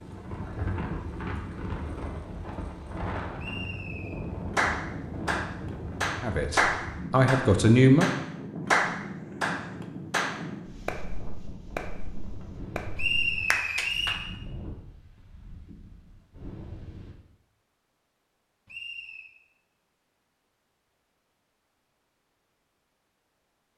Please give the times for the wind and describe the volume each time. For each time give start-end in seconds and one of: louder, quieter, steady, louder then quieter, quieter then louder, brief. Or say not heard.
0.0-17.1 quieter.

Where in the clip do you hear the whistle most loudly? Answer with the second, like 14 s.
13 s.